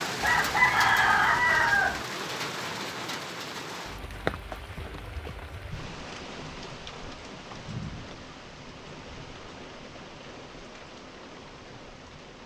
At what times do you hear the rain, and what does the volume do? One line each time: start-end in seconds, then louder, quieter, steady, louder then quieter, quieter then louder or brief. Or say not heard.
0.0-12.4 quieter.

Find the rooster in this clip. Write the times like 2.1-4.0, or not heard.
0.2-2.0.